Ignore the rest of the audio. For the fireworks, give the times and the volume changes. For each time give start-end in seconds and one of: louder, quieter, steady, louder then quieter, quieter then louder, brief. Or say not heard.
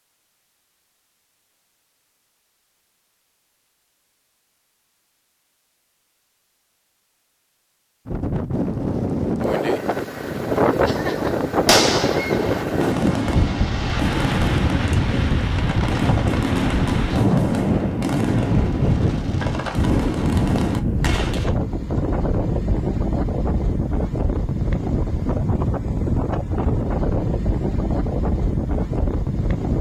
10.8-21.5 steady.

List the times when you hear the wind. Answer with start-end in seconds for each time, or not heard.
8.1-29.7.